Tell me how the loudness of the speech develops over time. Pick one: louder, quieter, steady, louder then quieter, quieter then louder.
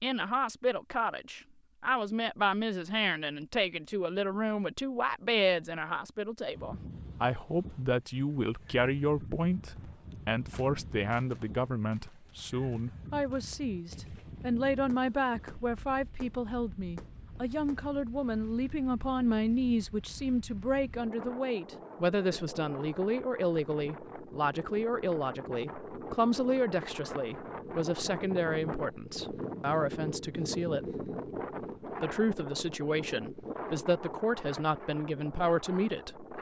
steady.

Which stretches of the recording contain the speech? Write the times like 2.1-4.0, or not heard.
0.0-30.9, 32.0-36.3.